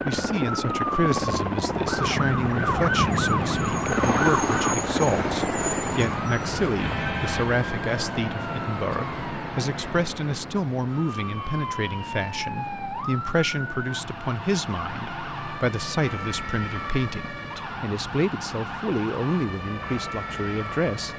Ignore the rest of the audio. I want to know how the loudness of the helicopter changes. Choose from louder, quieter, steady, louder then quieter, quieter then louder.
quieter.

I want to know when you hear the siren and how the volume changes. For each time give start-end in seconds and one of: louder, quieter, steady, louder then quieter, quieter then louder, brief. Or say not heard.
0.0-21.1 quieter.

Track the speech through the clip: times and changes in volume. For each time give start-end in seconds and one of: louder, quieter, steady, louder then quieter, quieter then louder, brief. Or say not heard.
0.0-21.1 steady.